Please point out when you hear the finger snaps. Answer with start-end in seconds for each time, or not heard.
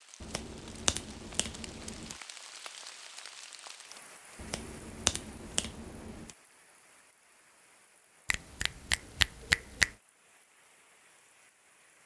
0.2-2.1, 4.3-6.3, 8.2-9.9.